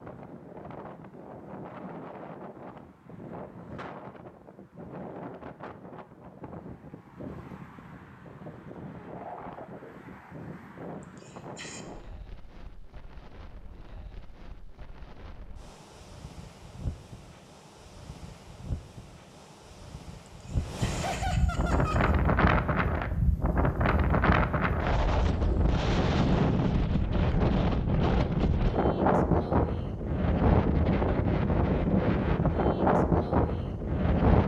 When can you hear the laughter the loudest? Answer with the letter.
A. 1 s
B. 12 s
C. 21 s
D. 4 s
C.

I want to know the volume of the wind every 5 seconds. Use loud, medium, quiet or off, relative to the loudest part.
quiet, quiet, quiet, quiet, loud, loud, loud.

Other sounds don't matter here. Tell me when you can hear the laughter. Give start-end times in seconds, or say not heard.
11.0-11.8, 20.2-22.1.